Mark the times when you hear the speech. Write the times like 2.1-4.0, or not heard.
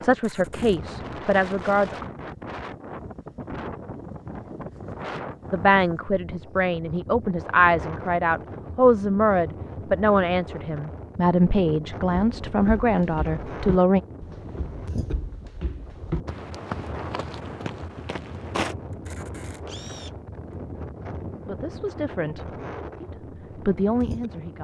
0.0-2.0, 5.5-14.0, 21.4-24.5.